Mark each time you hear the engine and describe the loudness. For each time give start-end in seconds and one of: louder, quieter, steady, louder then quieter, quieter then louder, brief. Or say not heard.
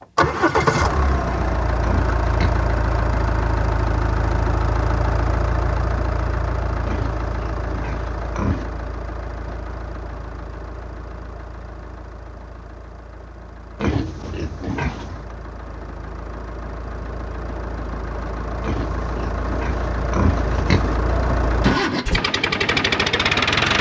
0.0-23.7 quieter then louder.